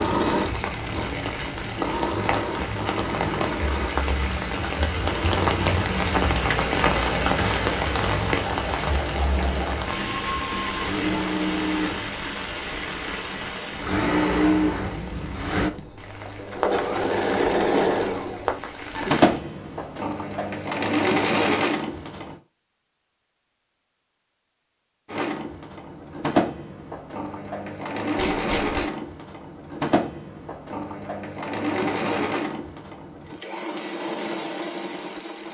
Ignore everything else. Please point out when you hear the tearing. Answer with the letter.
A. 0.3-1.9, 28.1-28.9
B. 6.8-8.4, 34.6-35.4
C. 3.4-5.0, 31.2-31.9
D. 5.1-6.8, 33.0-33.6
A.